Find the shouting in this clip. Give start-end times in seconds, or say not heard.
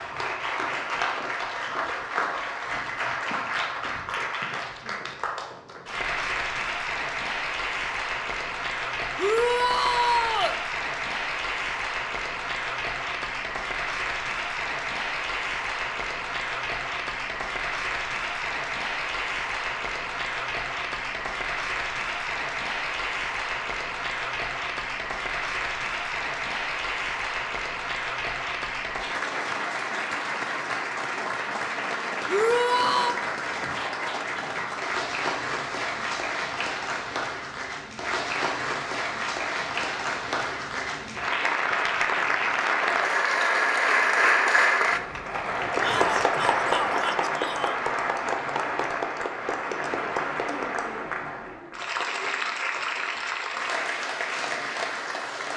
9.2-10.6, 32.2-33.1, 45.8-47.8.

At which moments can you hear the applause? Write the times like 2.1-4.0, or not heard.
0.0-55.5.